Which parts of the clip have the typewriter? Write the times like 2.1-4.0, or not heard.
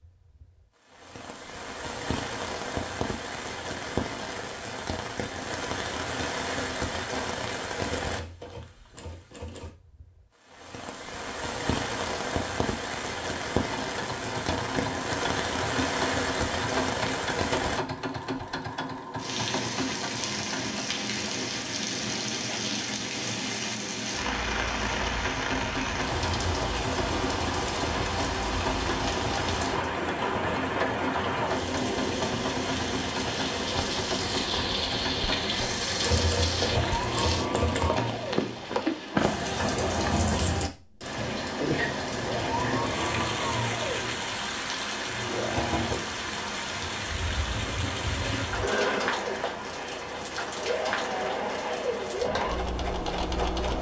8.0-9.7, 36.0-37.9.